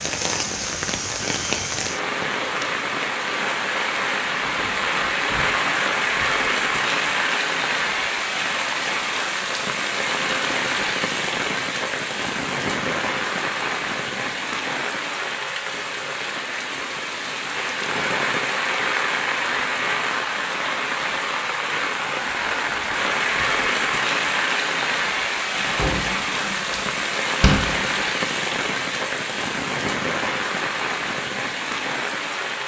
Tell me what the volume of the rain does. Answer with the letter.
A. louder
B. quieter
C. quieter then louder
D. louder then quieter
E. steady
E.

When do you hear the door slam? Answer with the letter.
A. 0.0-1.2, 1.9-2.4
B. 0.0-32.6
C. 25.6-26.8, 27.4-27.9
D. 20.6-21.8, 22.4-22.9
C.